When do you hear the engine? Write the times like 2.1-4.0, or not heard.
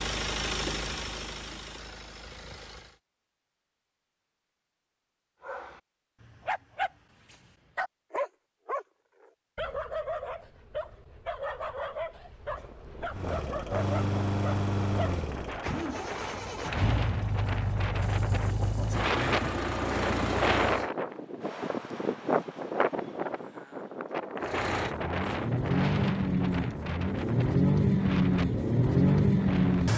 0.0-3.0, 13.1-20.9, 24.4-29.9.